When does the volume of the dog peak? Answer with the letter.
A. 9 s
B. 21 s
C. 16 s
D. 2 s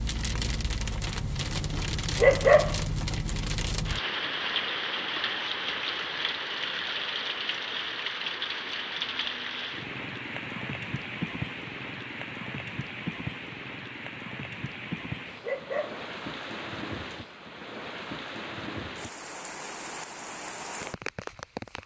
D.